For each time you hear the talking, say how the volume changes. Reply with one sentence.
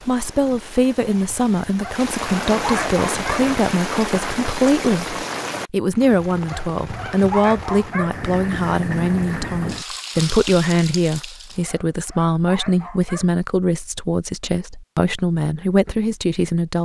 You can hear the talking from 0.1 to 16.8 s, at a steady volume.